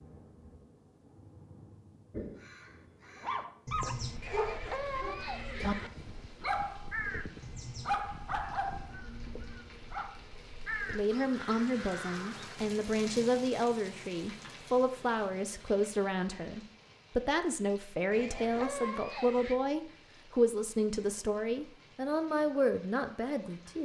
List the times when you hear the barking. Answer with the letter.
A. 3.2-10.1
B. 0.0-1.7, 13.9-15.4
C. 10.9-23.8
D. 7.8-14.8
A.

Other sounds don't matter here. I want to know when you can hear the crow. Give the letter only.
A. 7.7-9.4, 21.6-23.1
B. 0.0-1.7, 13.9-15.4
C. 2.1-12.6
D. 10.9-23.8
C.